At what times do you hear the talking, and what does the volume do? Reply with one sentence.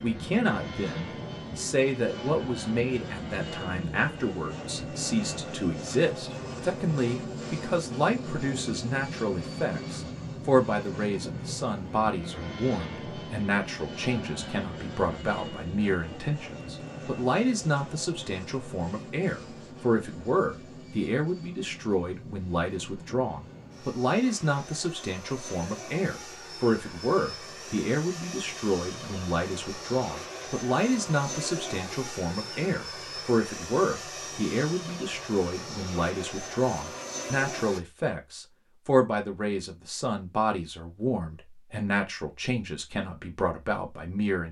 You can hear the talking from 0.0 to 44.4 s, at a steady volume.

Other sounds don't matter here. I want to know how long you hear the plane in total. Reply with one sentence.
You can hear the plane for 38 seconds altogether.